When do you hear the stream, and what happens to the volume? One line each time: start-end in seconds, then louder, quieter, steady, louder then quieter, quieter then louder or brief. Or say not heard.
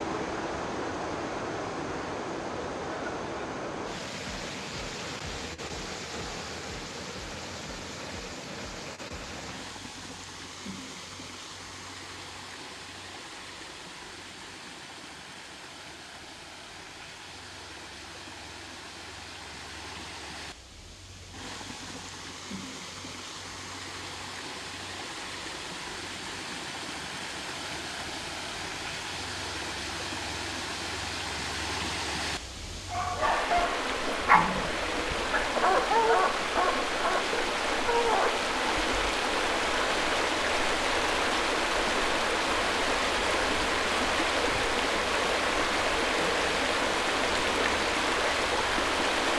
0.0-49.3 quieter then louder.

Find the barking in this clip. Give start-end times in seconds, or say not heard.
32.9-38.5.